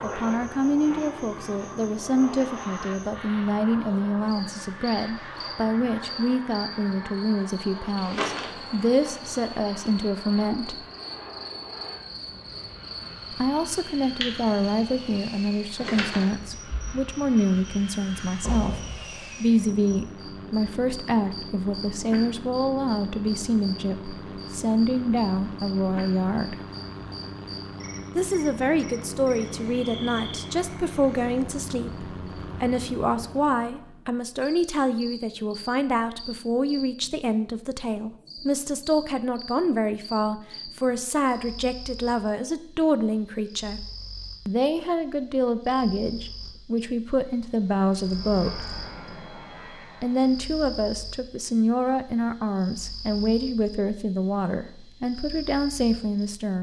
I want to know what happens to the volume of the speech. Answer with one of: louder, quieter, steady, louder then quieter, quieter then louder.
steady.